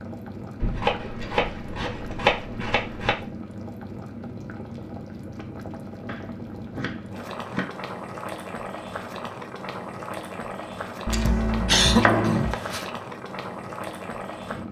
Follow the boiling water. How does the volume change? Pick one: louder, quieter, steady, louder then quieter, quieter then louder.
steady.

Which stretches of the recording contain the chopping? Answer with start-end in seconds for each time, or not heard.
0.6-3.2, 6.0-7.8, 11.1-12.6.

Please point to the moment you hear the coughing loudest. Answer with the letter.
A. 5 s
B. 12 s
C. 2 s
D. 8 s
B.